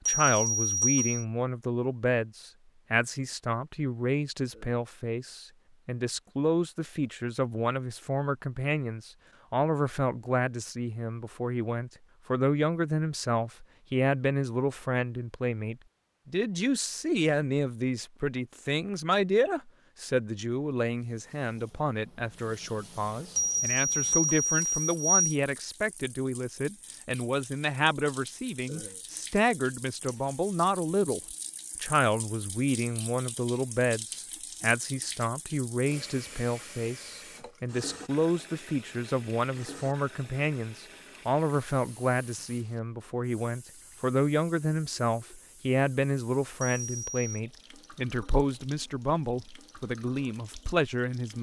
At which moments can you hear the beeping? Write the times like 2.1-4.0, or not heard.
0.1-1.2, 23.4-25.2, 46.6-47.2.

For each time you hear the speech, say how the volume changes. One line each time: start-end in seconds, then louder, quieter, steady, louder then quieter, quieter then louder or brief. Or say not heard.
0.1-51.3 steady.